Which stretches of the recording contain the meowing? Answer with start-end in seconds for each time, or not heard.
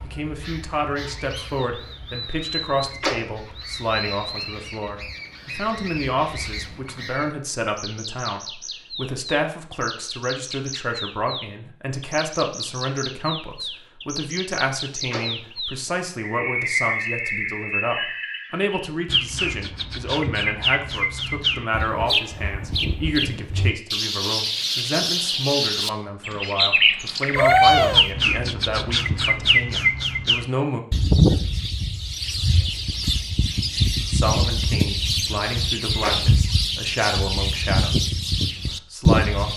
27.4-28.1.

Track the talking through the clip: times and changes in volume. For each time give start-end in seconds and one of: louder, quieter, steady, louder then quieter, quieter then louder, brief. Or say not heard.
0.0-30.8 steady
33.9-39.5 quieter.